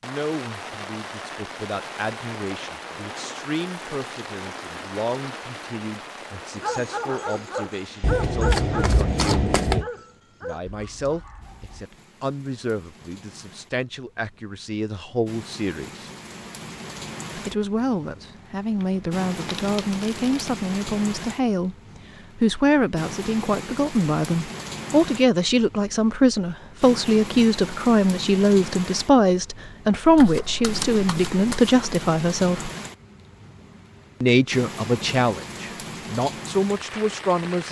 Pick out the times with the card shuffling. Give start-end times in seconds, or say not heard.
8.0-9.8, 18.8-20.6, 30.1-31.8.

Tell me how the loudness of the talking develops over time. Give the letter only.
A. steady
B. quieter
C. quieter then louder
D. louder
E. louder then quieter
D.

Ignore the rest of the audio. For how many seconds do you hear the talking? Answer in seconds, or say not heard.
35 s.